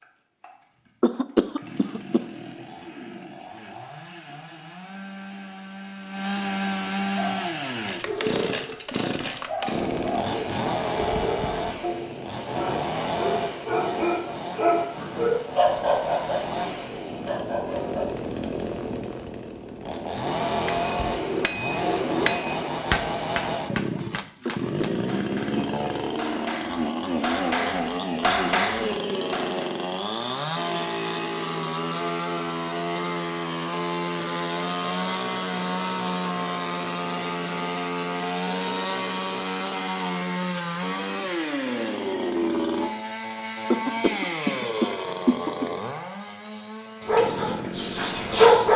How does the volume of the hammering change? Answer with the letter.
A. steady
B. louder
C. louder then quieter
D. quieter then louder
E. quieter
D.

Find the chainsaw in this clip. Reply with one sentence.
You can hear the chainsaw from 0.0 to 48.7 s.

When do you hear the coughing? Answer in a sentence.
The coughing can be heard from 1.0 to 2.2 s, from 24.4 to 25.6 s and from 43.7 to 45.7 s.